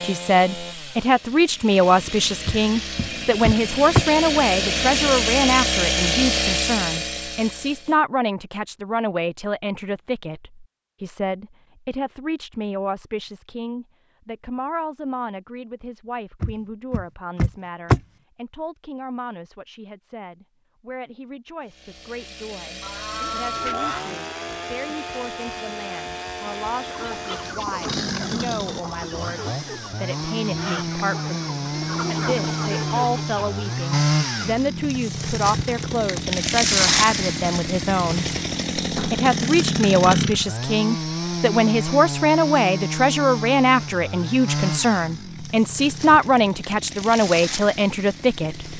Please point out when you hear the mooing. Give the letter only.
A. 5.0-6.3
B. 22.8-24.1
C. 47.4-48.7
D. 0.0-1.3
B.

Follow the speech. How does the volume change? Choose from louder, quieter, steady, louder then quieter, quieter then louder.
quieter then louder.